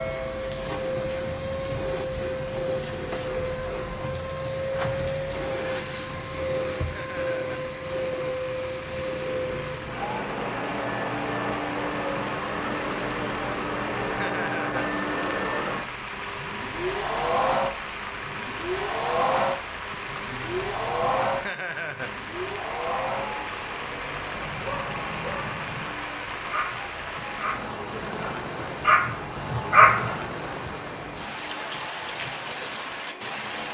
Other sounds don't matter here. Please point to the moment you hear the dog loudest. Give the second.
30 s.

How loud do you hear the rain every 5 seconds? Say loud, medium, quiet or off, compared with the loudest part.
medium, medium, loud, loud, loud, loud, loud.